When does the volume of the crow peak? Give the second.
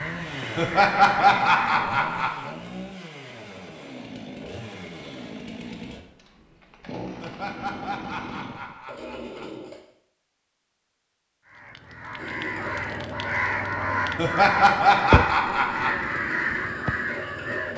15 s.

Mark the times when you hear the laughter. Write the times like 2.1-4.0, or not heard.
0.6-2.5, 7.2-9.7, 14.2-16.1.